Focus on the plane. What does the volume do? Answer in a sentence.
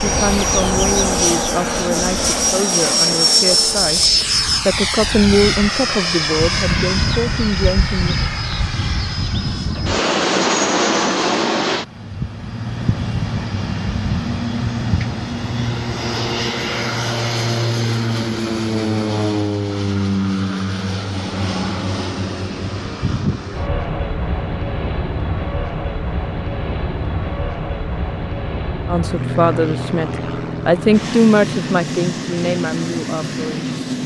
The volume of the plane goes down.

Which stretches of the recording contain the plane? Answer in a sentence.
You can hear the plane from 0.0 to 34.0 s.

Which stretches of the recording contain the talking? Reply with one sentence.
The talking can be heard from 0.0 to 4.0 s, from 4.7 to 8.2 s and from 28.9 to 34.0 s.